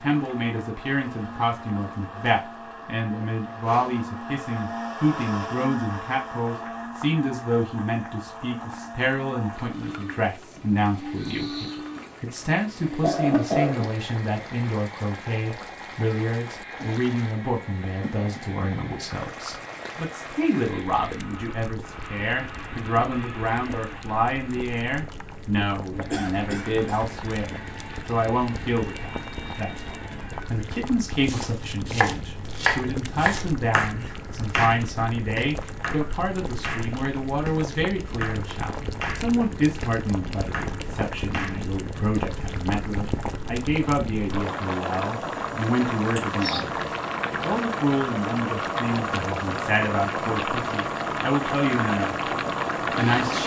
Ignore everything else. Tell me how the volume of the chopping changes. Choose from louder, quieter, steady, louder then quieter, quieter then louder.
quieter.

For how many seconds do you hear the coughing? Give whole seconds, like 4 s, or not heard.
3 s.